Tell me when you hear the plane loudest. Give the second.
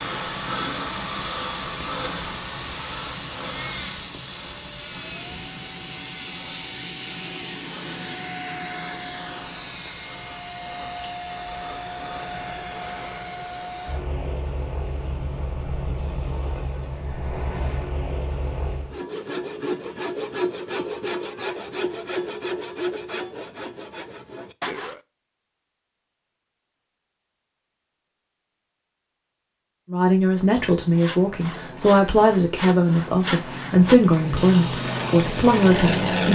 36 s.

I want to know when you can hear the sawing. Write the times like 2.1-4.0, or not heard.
18.9-25.0, 30.9-36.2.